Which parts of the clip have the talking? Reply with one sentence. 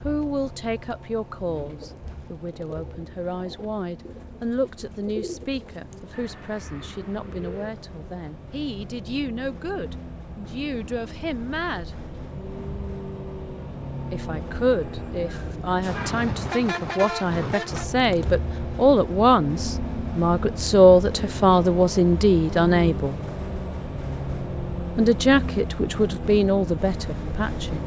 You can hear the talking from 0.0 to 11.9 s, from 14.1 to 23.1 s and from 24.9 to 27.8 s.